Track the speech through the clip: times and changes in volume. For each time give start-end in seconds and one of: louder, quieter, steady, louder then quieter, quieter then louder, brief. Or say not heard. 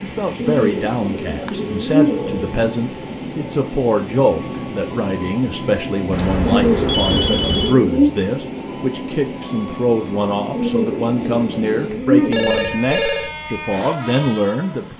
0.0-14.9 steady.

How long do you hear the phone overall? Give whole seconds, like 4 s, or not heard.
4 s.